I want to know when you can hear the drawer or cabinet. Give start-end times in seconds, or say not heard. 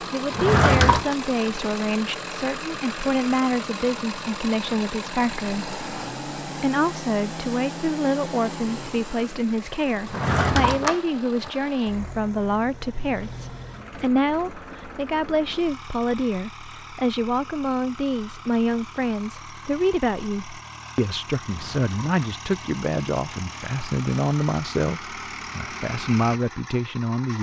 0.3-1.1, 10.1-11.5, 21.4-22.1.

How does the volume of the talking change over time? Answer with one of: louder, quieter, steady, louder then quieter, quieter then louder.
steady.